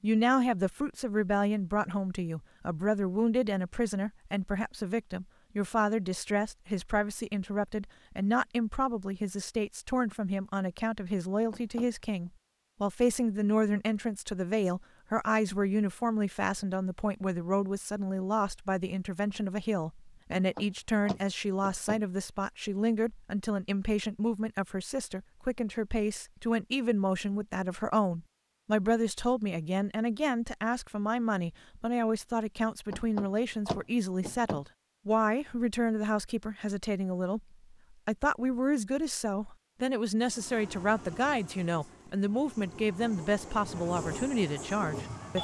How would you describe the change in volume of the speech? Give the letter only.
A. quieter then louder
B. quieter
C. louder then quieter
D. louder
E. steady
E.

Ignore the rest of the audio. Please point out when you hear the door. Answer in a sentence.
You can hear the door from 11.5 to 11.9 s, from 20.3 to 22.0 s and from 32.9 to 34.6 s.